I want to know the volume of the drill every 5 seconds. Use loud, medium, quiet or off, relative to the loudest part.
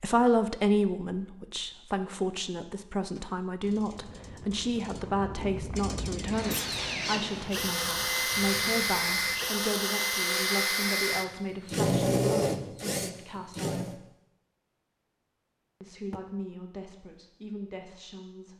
off, loud, loud, off.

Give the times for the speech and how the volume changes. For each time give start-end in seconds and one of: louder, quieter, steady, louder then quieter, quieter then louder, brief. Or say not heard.
0.0-14.0 quieter
15.8-18.5 brief.